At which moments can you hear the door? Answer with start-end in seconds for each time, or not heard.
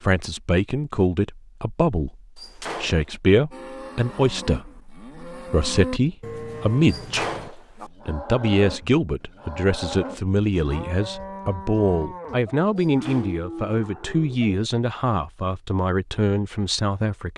2.4-3.1, 6.8-7.9, 12.8-13.5.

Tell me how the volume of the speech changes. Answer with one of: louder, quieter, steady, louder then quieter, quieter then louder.
steady.